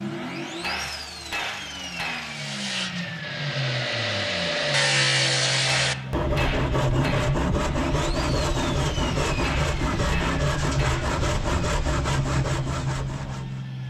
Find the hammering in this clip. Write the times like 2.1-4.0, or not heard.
0.6-2.4, 5.7-7.4, 9.4-11.2.